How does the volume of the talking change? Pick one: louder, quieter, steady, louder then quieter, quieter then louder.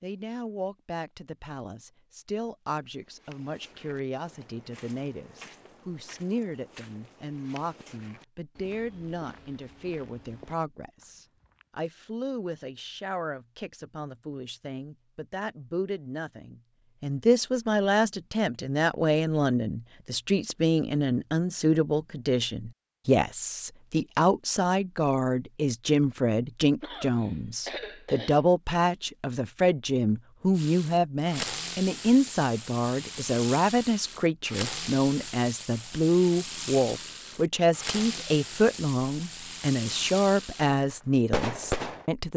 louder.